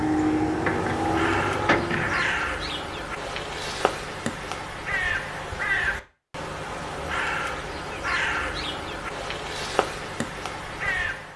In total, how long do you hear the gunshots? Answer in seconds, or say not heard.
2 s.